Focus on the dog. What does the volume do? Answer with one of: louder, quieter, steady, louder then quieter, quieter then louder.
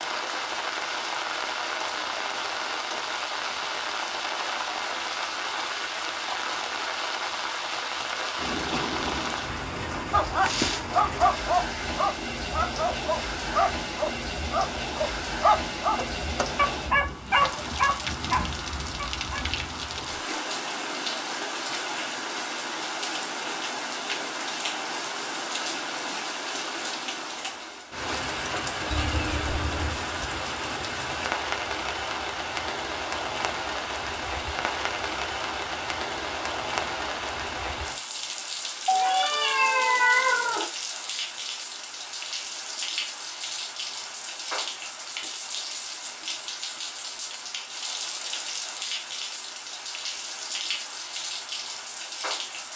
steady.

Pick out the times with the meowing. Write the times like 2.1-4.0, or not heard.
8.3-9.4, 28.9-30.1, 38.9-40.7.